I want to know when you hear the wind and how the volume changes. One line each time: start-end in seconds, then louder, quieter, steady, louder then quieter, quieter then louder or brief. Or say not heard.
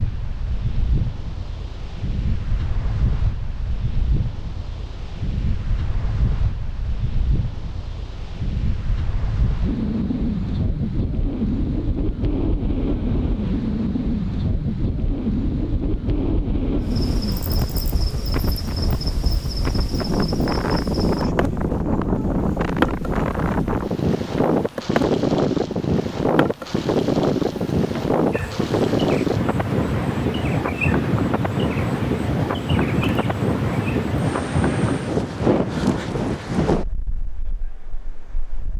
0.0-38.7 louder.